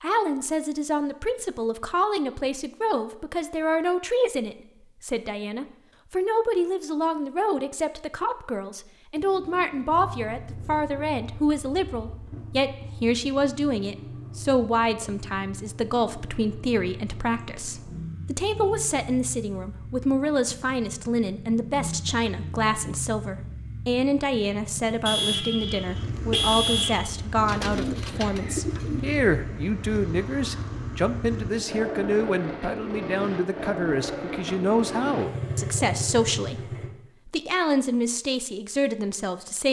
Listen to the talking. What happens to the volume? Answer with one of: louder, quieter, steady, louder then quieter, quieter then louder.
steady.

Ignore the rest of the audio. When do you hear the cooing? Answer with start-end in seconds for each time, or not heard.
9.2-11.1, 27.4-29.1.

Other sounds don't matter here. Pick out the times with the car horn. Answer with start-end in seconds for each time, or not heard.
25.1-27.0.